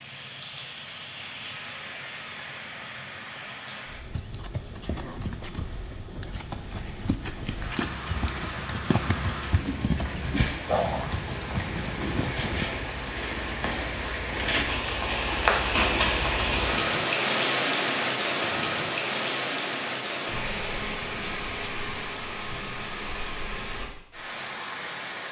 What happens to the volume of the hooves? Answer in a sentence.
The volume of the hooves goes up.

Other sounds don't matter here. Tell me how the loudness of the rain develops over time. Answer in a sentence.
The loudness of the rain goes up, then down.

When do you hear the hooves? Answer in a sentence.
The hooves can be heard from 4.0 to 12.7 s.